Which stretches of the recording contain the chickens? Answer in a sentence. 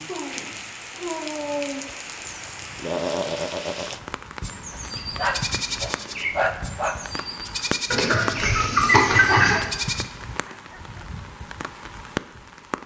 You can hear the chickens from 7.9 to 9.7 s.